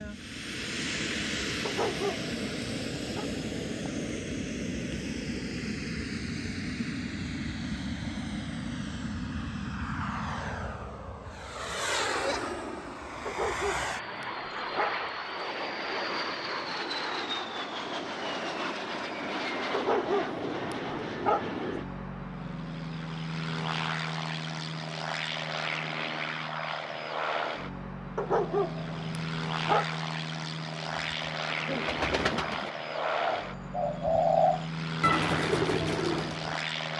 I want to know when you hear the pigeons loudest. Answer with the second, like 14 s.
34 s.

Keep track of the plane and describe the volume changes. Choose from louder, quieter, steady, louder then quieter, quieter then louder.
steady.